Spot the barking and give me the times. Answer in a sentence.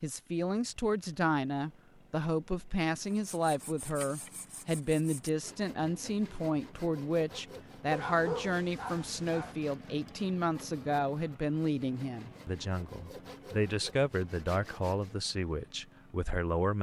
You can hear the barking from 7.9 to 9.6 s.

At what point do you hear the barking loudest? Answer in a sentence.
The loudest moment of the barking is at 8 seconds.